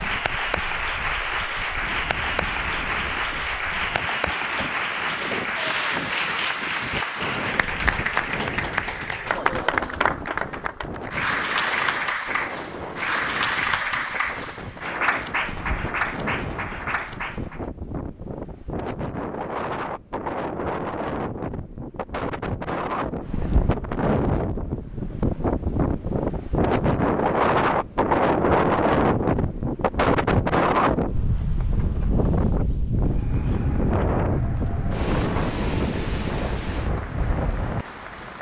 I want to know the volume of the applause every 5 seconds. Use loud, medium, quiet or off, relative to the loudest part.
loud, loud, loud, loud, off, off, quiet, quiet.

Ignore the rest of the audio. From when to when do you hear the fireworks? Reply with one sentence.
You can't hear the fireworks here.